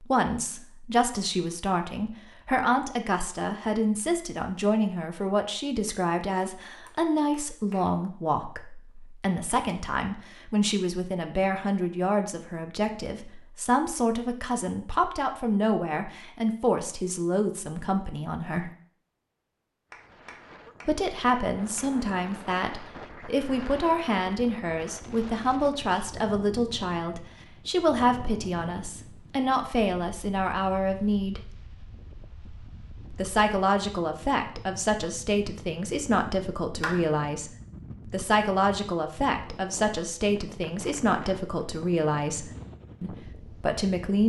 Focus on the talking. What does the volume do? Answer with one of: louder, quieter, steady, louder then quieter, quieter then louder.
steady.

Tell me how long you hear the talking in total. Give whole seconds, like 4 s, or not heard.
40 s.